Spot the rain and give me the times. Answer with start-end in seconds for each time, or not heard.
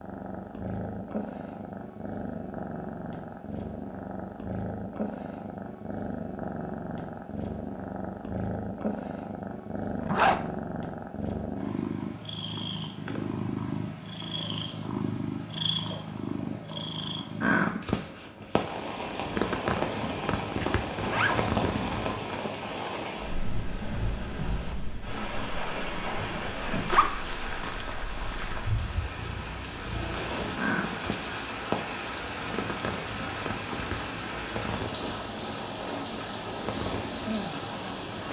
18.6-38.2.